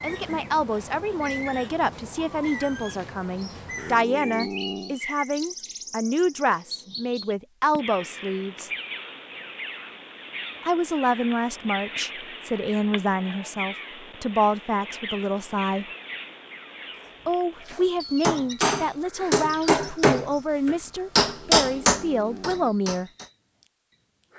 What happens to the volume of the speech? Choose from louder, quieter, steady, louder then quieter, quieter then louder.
steady.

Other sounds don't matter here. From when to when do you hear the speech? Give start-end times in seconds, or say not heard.
0.0-8.7, 10.6-15.8, 17.2-23.1.